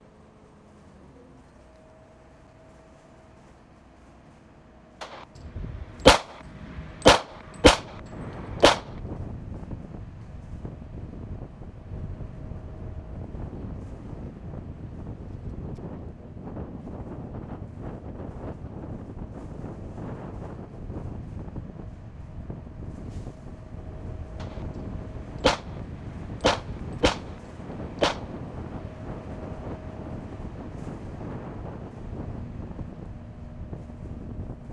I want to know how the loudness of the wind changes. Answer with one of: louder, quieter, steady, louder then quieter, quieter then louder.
steady.